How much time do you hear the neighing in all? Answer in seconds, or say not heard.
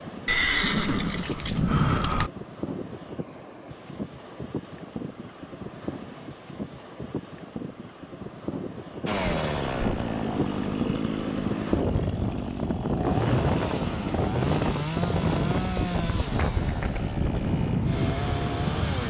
2 s.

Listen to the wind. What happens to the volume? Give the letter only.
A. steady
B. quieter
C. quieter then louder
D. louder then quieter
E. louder
E.